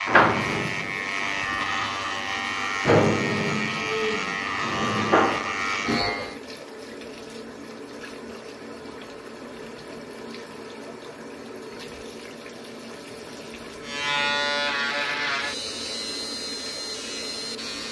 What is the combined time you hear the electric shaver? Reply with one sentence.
The electric shaver can be heard for 10 seconds in total.